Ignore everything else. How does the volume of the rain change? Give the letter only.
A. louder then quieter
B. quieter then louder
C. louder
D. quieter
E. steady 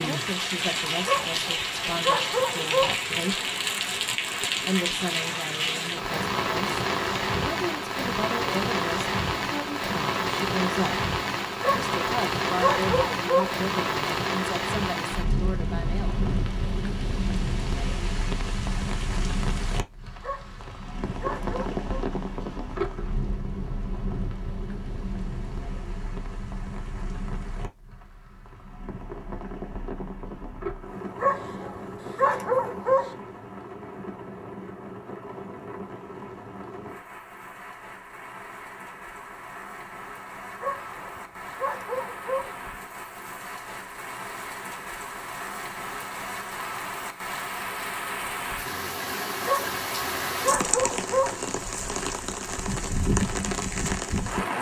B.